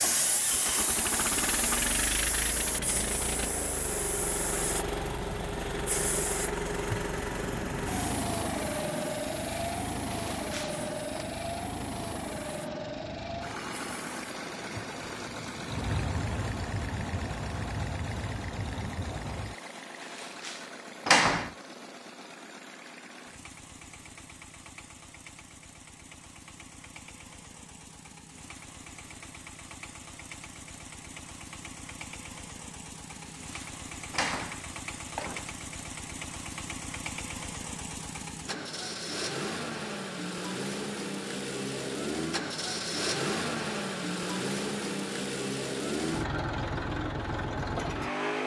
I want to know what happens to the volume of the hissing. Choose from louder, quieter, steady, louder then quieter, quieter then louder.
quieter then louder.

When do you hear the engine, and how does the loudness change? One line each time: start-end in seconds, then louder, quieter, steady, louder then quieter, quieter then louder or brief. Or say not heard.
0.0-48.4 quieter then louder.